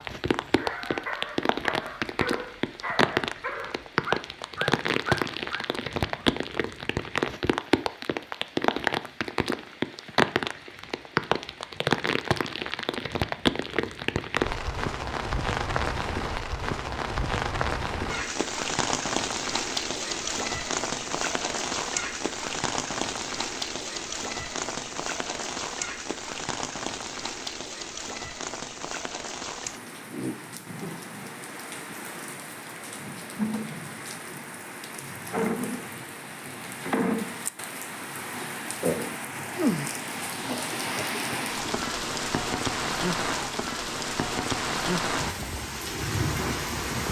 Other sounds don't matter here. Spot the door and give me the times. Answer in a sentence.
You can't hear the door here.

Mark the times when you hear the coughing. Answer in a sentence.
You can hear the coughing from 40.5 to 41.8 s.